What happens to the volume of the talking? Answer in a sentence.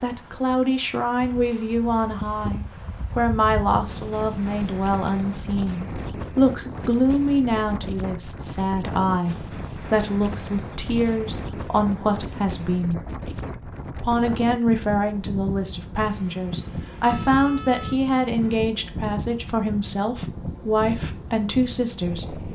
The volume of the talking stays about the same.